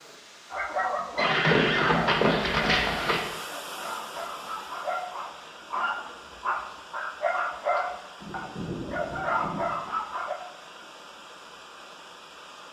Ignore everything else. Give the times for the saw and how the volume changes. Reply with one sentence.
You can't hear the saw here.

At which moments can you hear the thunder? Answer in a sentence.
The thunder can be heard from 8.2 to 9.7 s.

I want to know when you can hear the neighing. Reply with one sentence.
You can hear the neighing from 1.1 to 3.2 s.